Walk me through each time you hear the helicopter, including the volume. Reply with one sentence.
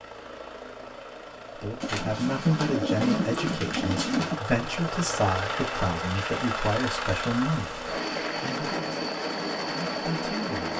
The helicopter can be heard from 0.0 to 10.7 s, getting louder.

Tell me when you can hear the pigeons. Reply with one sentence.
The pigeons can be heard from 1.8 to 4.4 s.